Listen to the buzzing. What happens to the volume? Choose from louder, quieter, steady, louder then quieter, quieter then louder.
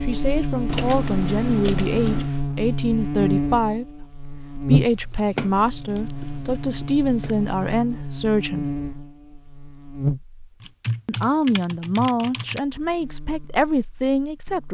quieter.